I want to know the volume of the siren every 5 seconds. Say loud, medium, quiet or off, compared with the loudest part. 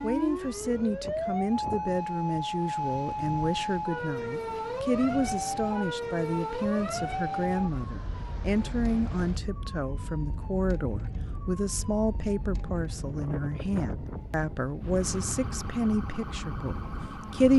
loud, loud, medium, medium.